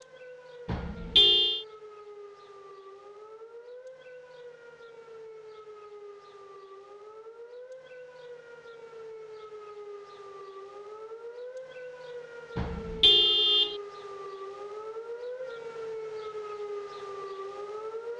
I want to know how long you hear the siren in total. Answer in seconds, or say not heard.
18 s.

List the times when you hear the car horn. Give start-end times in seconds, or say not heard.
0.7-1.6, 12.6-13.8.